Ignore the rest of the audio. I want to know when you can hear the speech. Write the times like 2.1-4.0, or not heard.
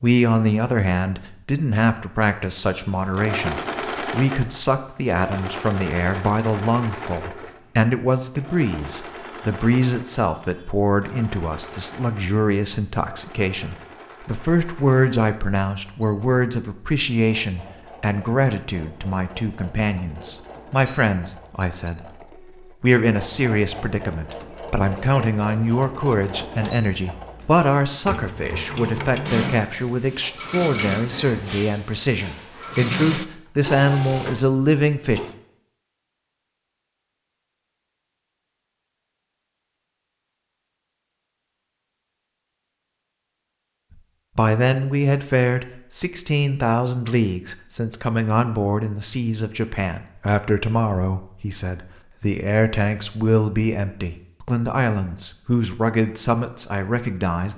0.0-35.2, 44.4-57.5.